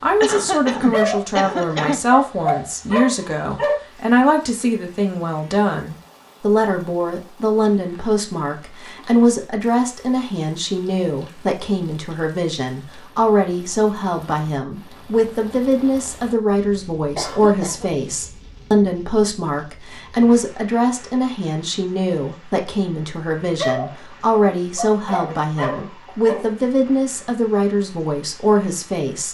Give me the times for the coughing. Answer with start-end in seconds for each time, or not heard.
0.2-2.0, 17.1-17.9, 25.1-26.6.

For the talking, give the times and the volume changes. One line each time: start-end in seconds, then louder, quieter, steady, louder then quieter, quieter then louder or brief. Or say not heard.
0.0-29.3 steady.